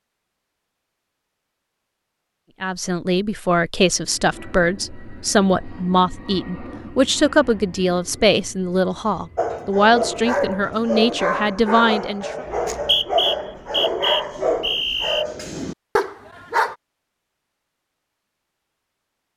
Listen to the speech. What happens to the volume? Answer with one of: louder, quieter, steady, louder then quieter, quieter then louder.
steady.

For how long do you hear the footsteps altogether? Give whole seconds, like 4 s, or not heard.
not heard.